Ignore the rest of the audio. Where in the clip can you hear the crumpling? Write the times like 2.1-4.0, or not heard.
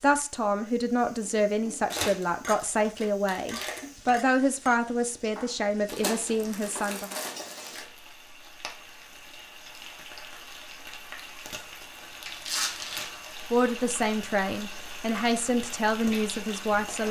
1.9-3.9, 5.8-7.8, 12.2-13.1.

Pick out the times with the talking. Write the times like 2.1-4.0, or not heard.
0.0-7.1, 13.5-17.0.